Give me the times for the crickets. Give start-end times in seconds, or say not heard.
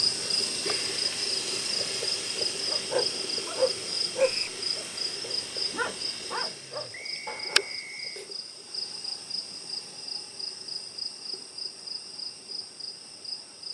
0.0-13.6.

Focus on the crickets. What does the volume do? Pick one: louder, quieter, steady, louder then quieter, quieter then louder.
quieter.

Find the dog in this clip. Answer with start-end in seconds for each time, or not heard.
2.6-7.8.